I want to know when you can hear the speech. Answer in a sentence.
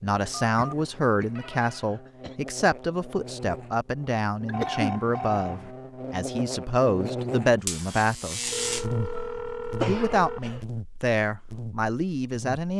You can hear the speech from 0.0 to 8.6 s and from 9.8 to 12.7 s.